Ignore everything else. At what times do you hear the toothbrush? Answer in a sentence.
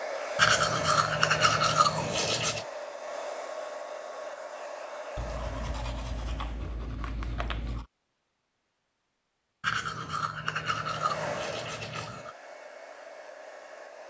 The toothbrush can be heard from 0.3 to 2.6 s, from 5.2 to 7.8 s and from 9.6 to 12.3 s.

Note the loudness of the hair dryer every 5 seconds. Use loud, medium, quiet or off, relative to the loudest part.
loud, medium, medium.